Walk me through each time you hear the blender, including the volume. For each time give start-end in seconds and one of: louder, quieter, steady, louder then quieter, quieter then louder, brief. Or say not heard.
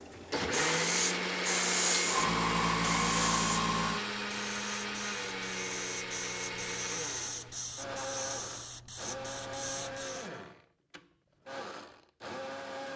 0.1-12.9 quieter.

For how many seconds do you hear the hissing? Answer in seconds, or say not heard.
10 s.